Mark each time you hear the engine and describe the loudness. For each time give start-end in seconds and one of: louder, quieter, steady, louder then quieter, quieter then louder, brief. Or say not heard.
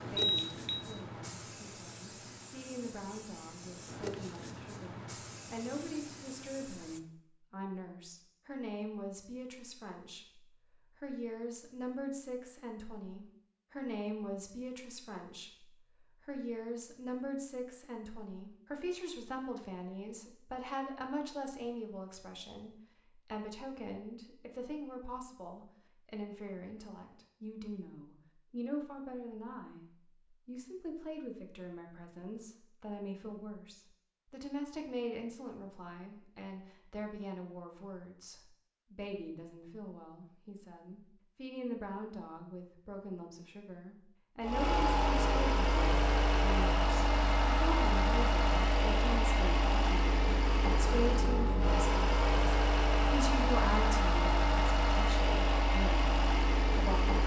44.4-57.2 steady.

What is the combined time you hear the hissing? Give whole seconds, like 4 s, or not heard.
7 s.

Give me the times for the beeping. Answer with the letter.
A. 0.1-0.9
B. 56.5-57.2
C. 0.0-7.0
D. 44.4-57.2
A.